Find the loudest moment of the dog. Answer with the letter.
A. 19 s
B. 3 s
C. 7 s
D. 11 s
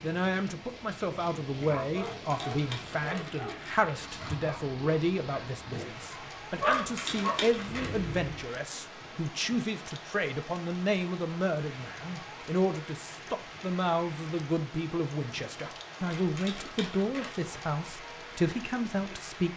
C.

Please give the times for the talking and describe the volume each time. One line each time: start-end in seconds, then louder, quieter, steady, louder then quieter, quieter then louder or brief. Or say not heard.
0.0-19.5 steady.